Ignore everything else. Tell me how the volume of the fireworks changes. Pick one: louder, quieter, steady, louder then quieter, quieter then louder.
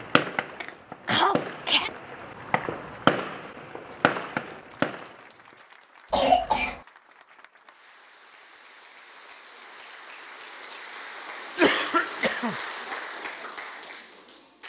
louder then quieter.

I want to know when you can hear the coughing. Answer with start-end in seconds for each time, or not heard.
0.6-1.9, 6.1-6.8, 11.6-12.6.